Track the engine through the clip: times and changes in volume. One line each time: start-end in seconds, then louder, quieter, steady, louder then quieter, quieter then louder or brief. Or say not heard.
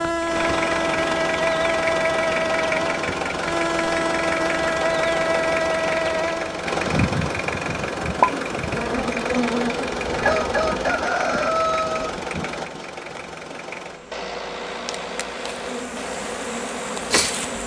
0.0-17.6 quieter.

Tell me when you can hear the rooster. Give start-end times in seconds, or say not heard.
10.2-12.1.